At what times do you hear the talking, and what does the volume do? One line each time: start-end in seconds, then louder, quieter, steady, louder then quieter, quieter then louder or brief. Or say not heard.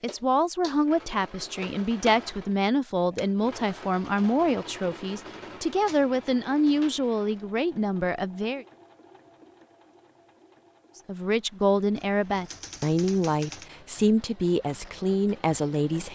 0.0-8.7 steady
11.1-16.1 steady.